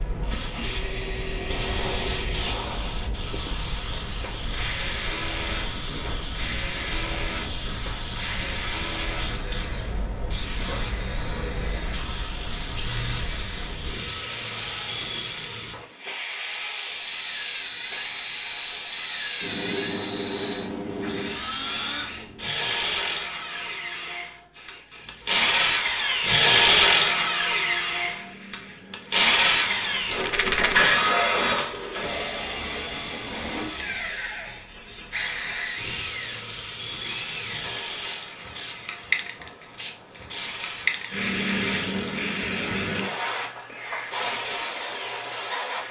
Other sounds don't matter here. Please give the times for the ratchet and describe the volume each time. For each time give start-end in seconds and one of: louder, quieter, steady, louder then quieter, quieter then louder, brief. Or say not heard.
not heard.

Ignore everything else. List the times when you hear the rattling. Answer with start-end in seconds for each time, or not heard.
30.1-30.9.